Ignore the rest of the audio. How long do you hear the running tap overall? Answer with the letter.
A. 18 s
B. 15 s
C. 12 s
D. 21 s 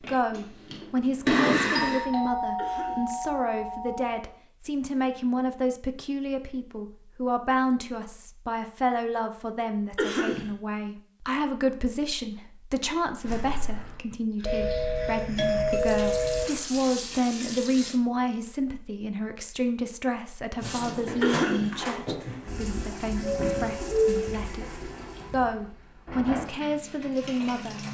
C.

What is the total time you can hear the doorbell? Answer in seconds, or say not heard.
6 s.